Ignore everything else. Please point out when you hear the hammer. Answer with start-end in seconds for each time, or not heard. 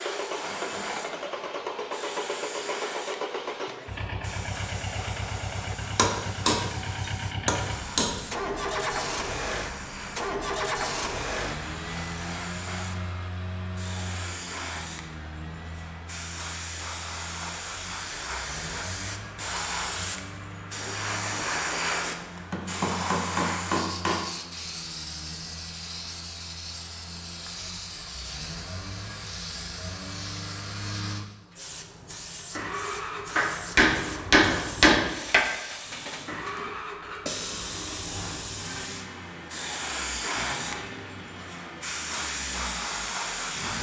6.0-6.7, 7.5-8.2, 22.2-24.2, 33.4-35.5.